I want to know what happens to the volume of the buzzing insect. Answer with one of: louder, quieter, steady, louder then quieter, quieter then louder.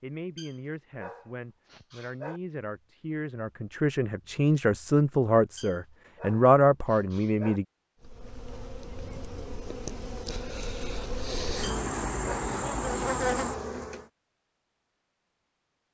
louder.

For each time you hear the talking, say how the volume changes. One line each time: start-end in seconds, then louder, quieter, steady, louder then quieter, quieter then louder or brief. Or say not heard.
0.0-7.7 louder.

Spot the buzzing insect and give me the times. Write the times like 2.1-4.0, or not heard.
8.0-14.1.